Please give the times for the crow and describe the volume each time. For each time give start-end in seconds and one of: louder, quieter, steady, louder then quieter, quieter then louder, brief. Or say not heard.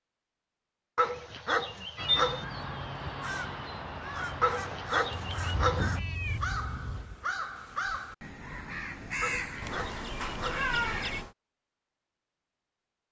1.9-11.2 steady.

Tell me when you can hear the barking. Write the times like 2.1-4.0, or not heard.
0.9-2.5, 4.4-5.9, 9.2-10.7.